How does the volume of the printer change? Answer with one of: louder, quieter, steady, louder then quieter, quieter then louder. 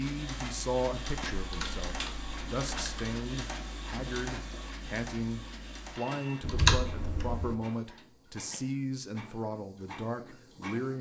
quieter.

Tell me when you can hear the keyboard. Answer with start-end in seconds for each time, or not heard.
1.2-3.1, 6.4-7.5.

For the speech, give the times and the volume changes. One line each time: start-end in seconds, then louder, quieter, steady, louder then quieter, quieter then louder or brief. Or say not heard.
0.0-10.9 steady.